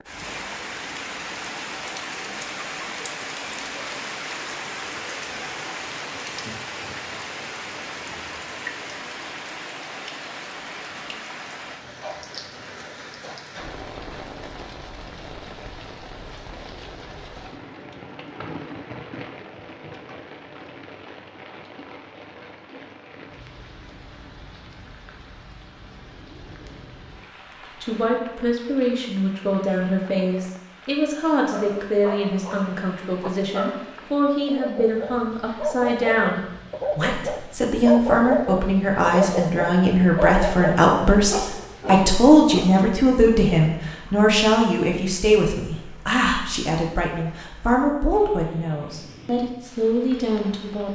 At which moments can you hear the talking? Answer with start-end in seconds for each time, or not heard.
27.8-50.9.